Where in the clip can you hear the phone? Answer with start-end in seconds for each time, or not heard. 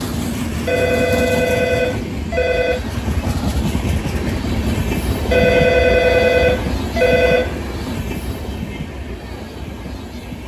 0.7-2.8, 5.3-7.8.